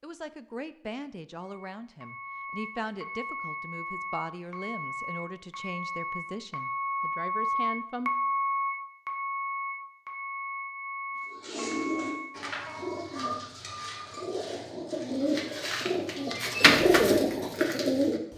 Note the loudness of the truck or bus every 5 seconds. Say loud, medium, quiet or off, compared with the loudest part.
medium, loud, medium, off.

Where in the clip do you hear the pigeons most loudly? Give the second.
17 s.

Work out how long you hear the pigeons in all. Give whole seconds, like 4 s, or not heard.
7 s.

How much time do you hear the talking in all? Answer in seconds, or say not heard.
8 s.